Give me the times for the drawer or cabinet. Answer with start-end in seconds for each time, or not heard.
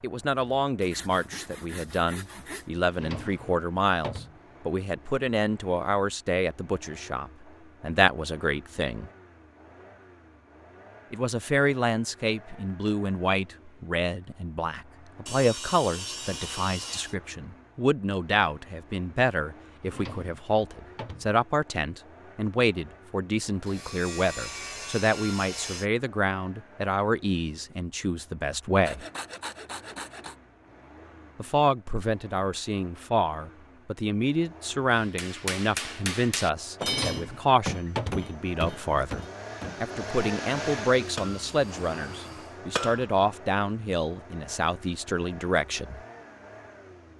2.9-4.4, 19.8-21.4, 36.8-38.3.